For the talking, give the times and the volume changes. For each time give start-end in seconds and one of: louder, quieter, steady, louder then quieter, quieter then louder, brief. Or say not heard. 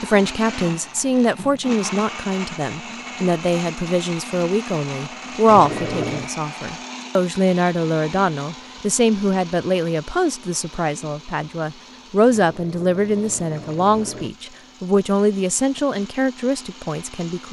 0.0-17.4 steady.